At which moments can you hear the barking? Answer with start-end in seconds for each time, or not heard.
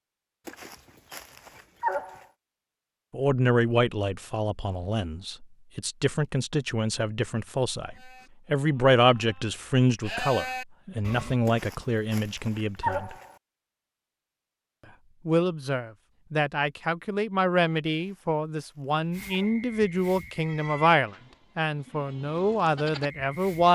0.5-2.2, 11.4-13.3, 17.9-19.6.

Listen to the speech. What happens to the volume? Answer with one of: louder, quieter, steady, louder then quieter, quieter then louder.
steady.